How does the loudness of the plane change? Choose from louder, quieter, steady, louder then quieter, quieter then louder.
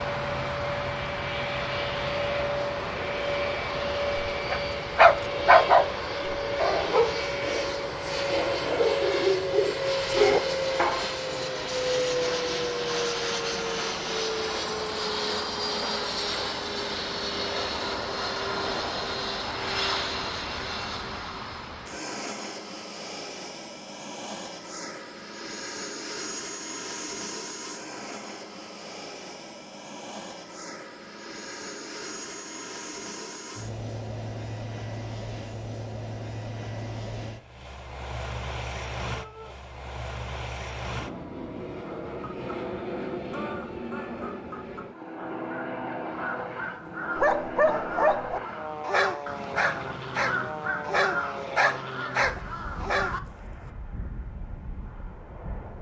quieter.